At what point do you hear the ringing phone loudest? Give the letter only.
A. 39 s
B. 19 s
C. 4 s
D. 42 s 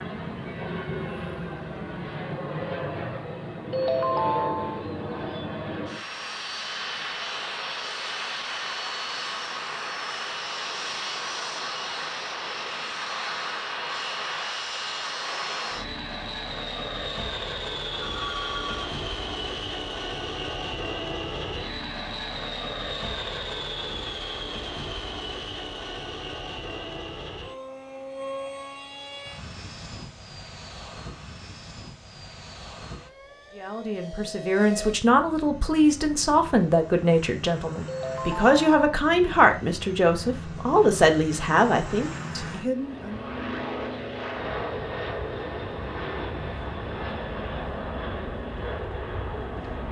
C.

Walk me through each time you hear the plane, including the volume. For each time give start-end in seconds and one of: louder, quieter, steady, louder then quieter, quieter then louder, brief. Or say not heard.
0.0-49.8 quieter then louder.